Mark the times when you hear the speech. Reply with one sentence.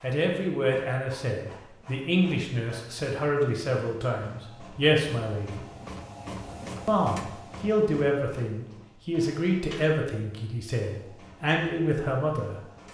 You can hear the speech from 0.0 to 5.7 s and from 6.8 to 12.6 s.